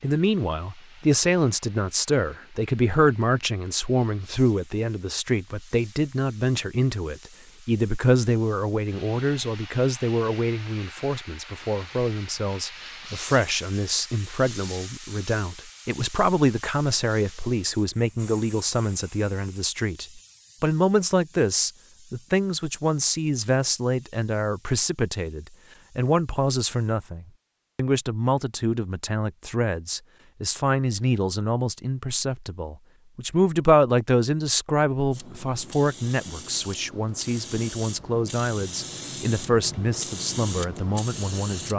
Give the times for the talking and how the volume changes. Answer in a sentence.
You can hear the talking from 0.0 to 41.7 s, at a steady volume.